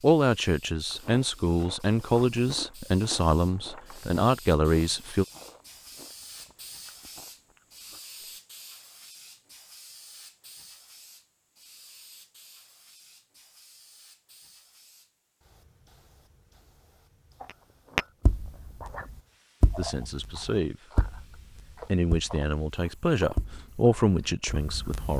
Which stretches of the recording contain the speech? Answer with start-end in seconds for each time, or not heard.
0.0-5.2, 19.8-25.1.